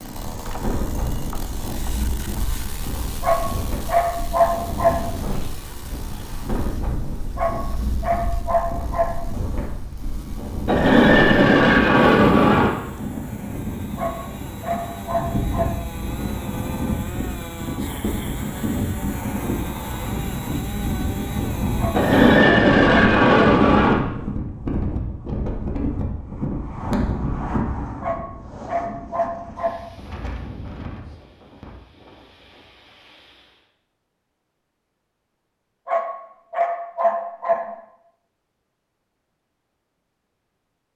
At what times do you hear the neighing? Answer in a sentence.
You can hear the neighing from 10.7 to 12.7 s and from 21.9 to 23.9 s.